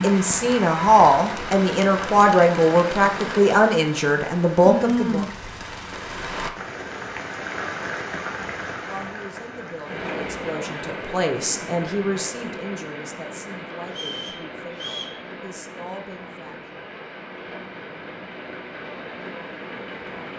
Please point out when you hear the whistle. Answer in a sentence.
The whistle can be heard from 13.8 to 15.2 s.